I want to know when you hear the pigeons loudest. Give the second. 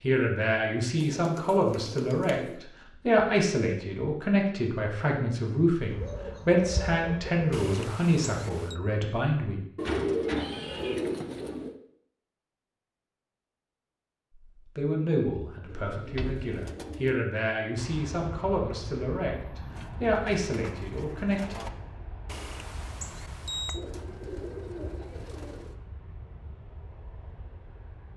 10 s.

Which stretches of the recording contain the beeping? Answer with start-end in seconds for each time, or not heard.
7.5-8.8, 22.2-23.8.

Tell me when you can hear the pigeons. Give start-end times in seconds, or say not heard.
0.9-2.6, 5.9-7.6, 9.8-11.8, 15.7-17.1, 19.7-21.7, 23.7-25.8.